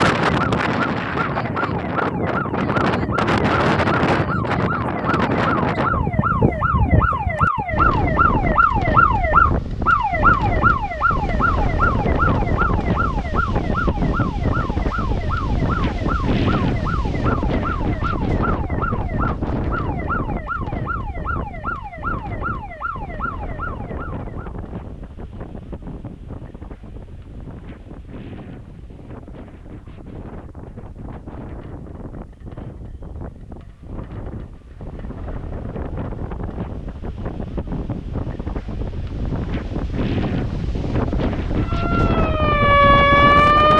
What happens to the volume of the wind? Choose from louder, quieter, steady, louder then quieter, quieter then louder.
quieter then louder.